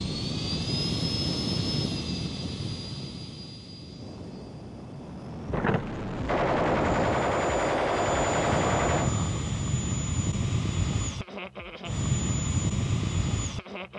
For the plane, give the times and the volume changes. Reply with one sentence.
The plane can be heard from 0.0 to 13.9 s, getting quieter then louder.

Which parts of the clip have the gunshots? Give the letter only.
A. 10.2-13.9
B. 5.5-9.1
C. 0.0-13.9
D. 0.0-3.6
B.